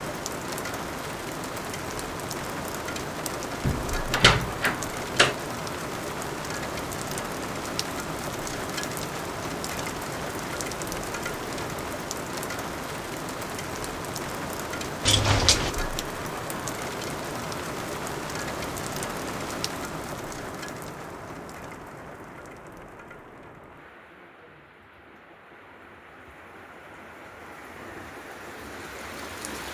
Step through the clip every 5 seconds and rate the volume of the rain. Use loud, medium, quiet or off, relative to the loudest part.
loud, loud, loud, loud, medium, medium.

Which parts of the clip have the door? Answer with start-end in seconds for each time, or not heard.
3.6-5.3, 15.1-15.7.